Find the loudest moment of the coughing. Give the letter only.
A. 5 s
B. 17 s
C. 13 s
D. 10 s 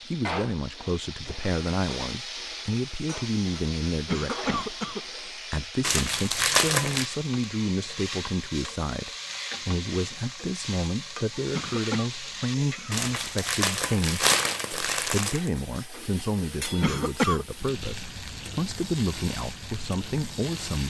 B.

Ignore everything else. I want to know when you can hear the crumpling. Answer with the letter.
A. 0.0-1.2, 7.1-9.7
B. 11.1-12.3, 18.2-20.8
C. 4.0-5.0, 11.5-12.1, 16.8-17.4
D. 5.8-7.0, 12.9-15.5
D.